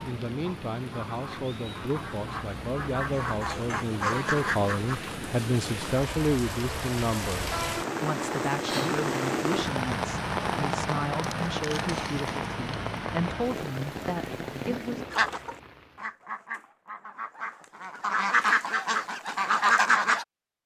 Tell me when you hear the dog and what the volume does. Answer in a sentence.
You can't hear the dog here.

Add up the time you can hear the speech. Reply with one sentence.
You can hear the speech for 15 seconds altogether.